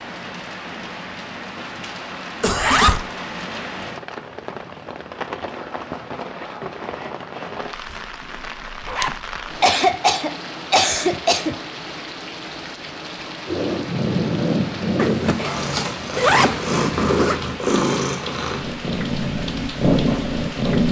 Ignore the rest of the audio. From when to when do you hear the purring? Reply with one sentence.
You can hear the purring from 13.4 to 20.8 s.